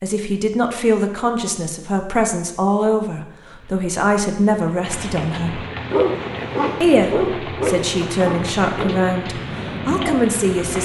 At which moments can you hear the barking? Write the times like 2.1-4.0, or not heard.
5.9-10.7.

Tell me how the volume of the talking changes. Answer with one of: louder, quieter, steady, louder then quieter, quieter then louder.
steady.